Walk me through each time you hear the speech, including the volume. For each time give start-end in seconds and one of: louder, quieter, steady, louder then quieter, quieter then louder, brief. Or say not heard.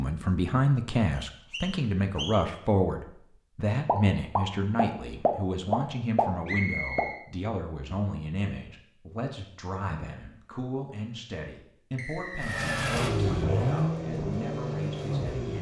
0.0-15.5 quieter.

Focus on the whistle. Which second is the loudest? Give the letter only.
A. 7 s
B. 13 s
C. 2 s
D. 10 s
A.